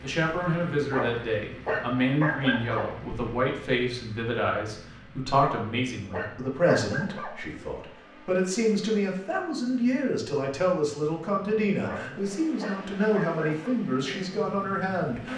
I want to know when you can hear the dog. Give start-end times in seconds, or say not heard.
0.8-2.9, 5.3-7.3, 11.8-13.8.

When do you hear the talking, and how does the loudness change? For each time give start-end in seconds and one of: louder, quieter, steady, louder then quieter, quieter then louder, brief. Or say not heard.
0.0-15.3 steady.